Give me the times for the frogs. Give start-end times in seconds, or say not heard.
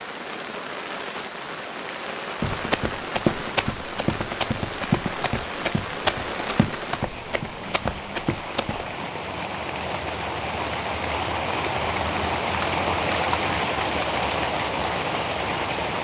not heard.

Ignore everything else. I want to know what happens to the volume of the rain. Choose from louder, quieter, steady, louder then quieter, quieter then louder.
louder.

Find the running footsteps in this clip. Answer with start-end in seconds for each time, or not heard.
2.4-8.9.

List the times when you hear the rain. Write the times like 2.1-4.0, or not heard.
0.0-15.9.